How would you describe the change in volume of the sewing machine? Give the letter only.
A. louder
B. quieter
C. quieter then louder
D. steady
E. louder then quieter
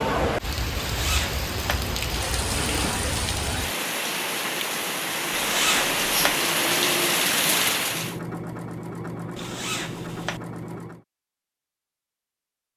D.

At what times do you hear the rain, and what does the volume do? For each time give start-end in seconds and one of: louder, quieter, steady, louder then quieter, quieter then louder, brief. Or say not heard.
0.0-8.2 louder.